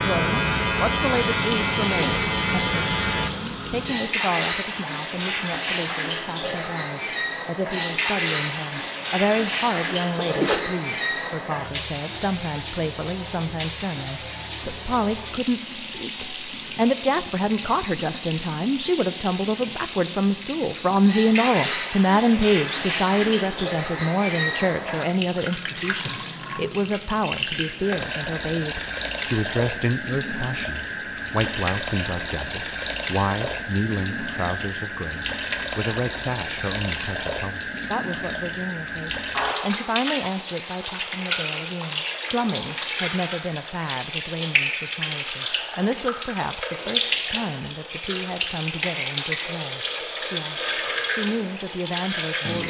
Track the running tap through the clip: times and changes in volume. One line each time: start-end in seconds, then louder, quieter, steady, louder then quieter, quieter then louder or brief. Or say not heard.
0.0-52.6 steady.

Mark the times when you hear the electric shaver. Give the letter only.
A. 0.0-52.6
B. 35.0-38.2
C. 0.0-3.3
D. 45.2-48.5
C.